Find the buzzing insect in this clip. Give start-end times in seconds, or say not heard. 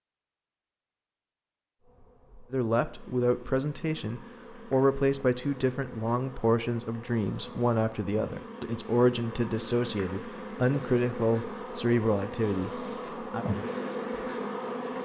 1.8-15.0.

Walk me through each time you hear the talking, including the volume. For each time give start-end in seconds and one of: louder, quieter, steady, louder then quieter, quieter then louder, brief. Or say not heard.
2.5-13.4 steady.